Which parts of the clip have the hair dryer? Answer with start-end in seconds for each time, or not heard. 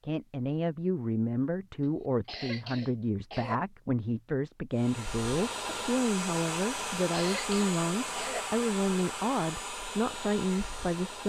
4.7-11.2.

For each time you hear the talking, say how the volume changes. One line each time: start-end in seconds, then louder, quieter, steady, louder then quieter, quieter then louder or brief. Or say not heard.
0.0-11.2 steady.